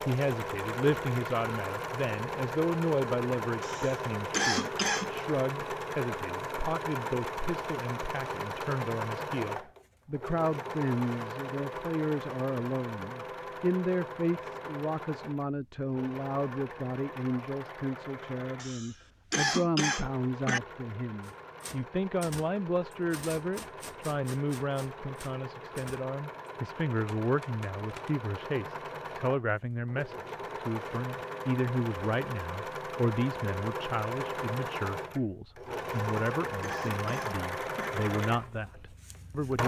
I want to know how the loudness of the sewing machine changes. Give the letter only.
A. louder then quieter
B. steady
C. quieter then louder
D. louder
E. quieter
C.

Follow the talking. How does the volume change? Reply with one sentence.
The volume of the talking stays about the same.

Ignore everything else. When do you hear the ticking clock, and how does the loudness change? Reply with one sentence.
The ticking clock can't be heard in this clip.